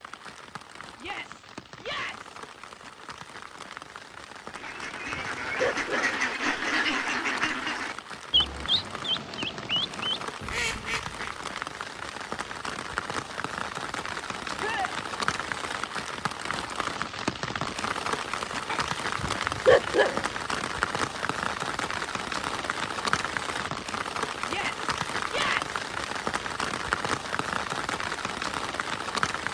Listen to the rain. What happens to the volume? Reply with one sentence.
The volume of the rain goes up.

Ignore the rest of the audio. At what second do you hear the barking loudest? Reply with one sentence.
The volume of the barking peaks at 20 seconds.